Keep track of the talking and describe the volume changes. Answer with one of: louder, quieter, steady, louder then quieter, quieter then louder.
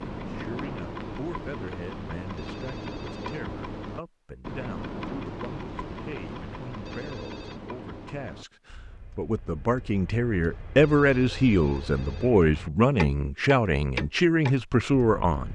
louder.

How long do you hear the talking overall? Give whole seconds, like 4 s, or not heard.
15 s.